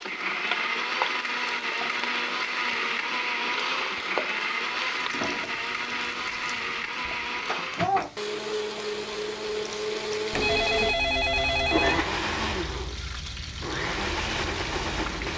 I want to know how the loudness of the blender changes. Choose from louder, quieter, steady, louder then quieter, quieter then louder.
steady.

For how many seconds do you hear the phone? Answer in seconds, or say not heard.
2 s.